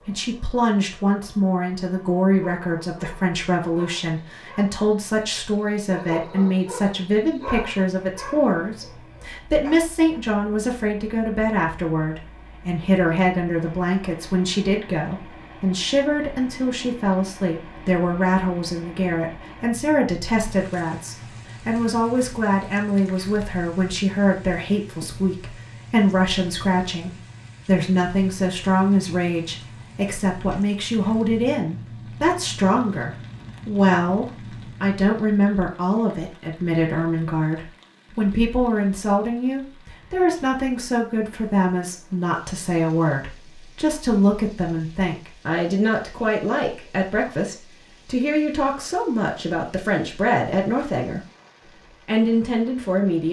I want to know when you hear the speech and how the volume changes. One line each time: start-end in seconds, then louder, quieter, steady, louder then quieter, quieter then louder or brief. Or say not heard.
0.1-53.2 steady.